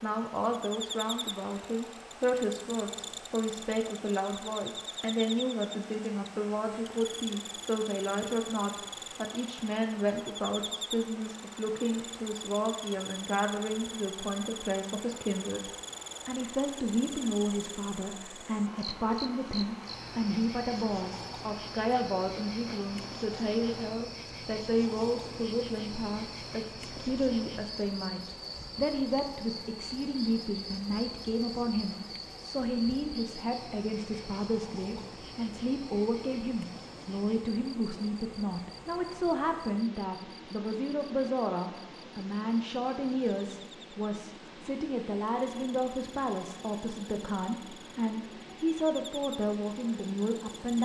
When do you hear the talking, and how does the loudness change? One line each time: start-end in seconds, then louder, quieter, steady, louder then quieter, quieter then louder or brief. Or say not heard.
0.0-50.7 steady.